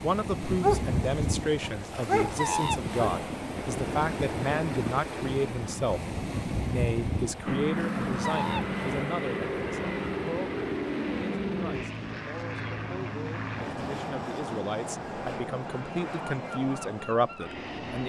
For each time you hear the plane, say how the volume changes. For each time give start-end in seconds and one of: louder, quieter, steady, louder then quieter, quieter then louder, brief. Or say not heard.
7.5-18.0 quieter.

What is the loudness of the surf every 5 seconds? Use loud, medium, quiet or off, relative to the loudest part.
loud, loud, medium, quiet.